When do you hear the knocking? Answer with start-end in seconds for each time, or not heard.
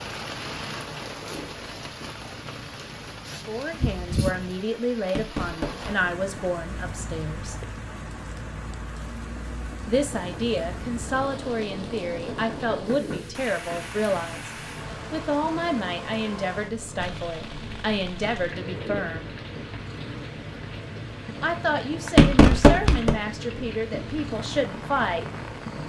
5.0-5.9, 12.3-13.2, 22.1-23.1.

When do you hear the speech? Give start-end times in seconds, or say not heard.
3.5-7.5, 9.8-19.4, 21.4-25.2.